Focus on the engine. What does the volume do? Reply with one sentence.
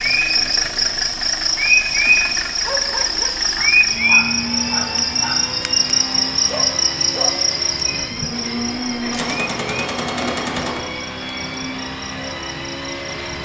The loudness of the engine stays about the same.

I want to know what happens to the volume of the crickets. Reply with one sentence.
The volume of the crickets goes down.